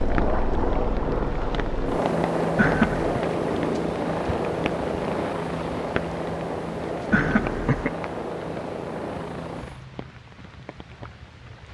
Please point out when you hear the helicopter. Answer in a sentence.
You can hear the helicopter from 0.0 to 9.8 s.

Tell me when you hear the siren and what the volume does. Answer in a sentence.
You can't hear the siren here.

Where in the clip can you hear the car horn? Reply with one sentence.
You can hear the car horn from 2.5 to 3.2 s and from 7.1 to 7.9 s.